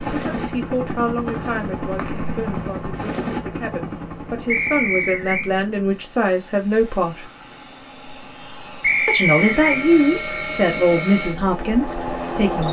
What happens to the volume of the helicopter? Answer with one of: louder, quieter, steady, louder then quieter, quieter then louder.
quieter then louder.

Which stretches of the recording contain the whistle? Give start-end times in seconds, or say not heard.
1.2-2.6, 4.5-5.5, 8.8-9.8.